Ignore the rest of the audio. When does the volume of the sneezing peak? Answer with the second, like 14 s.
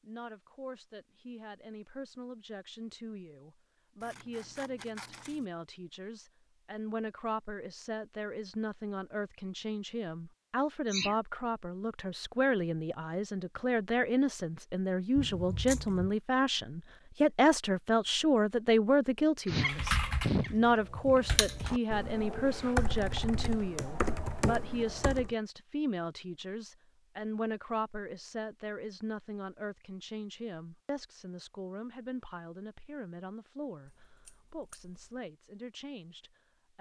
20 s.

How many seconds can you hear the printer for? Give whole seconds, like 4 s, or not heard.
not heard.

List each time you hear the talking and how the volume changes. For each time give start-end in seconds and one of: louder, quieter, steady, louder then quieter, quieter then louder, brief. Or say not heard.
0.0-36.7 louder then quieter.